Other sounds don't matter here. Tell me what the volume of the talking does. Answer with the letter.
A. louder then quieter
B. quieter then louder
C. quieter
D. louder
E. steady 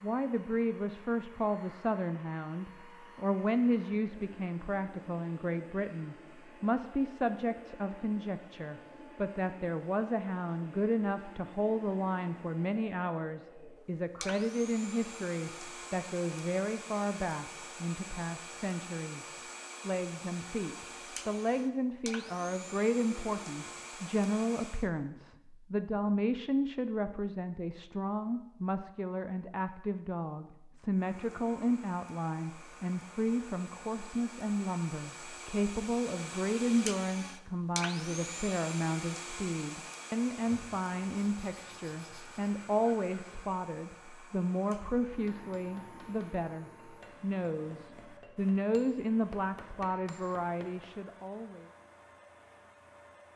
E.